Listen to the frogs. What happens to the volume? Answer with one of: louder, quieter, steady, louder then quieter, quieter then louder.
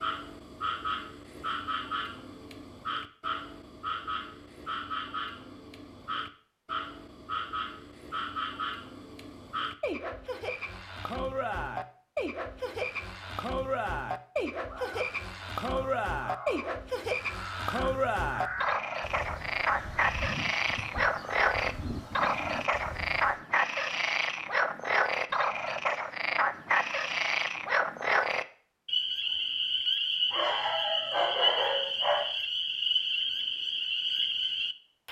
louder.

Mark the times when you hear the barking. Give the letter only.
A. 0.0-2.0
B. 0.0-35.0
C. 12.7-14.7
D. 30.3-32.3
D.